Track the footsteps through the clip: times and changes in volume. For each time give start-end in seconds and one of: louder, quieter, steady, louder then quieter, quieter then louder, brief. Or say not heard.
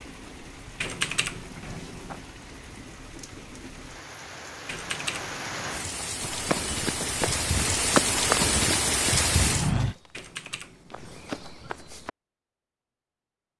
6.2-12.1 louder then quieter.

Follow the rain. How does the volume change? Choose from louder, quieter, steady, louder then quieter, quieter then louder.
louder.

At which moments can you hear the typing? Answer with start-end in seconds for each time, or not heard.
0.8-2.2, 4.7-6.1, 10.1-11.6.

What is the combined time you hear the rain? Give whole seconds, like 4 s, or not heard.
10 s.